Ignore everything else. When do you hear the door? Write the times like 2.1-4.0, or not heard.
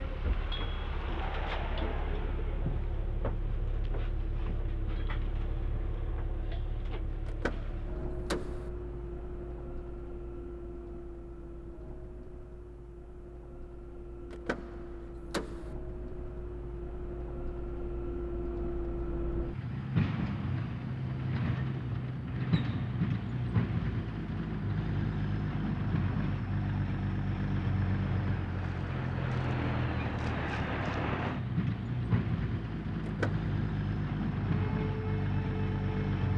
7.2-8.7, 14.3-15.8, 33.0-33.5.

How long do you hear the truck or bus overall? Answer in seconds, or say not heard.
36 s.